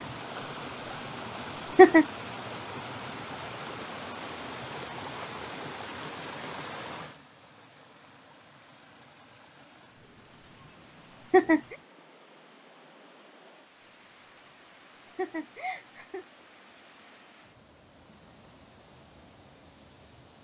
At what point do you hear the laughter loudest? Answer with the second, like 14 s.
2 s.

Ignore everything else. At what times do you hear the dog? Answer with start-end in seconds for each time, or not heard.
not heard.